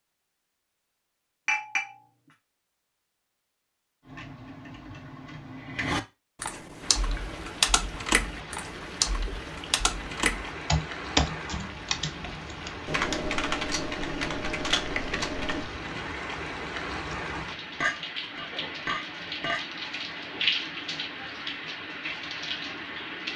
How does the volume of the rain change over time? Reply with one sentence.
The loudness of the rain goes up.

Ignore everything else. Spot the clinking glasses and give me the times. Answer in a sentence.
You can hear the clinking glasses from 1.4 to 2.4 s and from 17.8 to 19.6 s.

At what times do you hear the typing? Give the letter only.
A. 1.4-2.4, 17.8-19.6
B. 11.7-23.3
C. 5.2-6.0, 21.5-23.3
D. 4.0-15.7
D.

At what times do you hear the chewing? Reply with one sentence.
You can't hear the chewing here.